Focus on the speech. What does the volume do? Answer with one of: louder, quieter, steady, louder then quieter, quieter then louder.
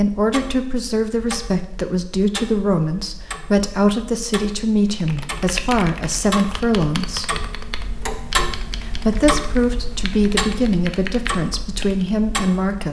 steady.